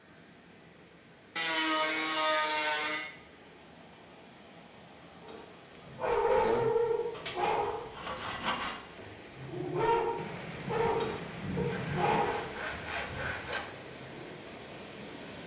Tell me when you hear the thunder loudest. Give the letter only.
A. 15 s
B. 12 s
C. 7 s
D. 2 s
B.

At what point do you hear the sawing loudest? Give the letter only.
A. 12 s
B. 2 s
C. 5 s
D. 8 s
B.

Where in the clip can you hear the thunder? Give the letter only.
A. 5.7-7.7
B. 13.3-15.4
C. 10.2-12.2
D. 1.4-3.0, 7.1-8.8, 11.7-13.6
C.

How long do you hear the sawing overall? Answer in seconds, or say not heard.
5 s.